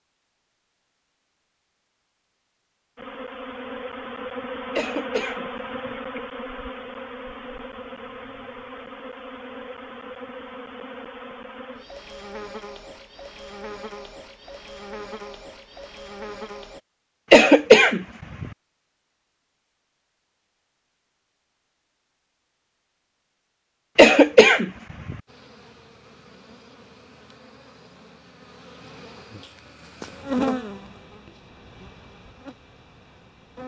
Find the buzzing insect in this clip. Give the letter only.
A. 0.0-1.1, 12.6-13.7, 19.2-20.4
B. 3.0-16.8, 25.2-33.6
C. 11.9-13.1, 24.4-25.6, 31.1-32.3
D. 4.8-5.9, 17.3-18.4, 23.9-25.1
B.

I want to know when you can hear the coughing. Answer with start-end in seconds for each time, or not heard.
4.8-5.9, 17.3-18.4, 23.9-25.1.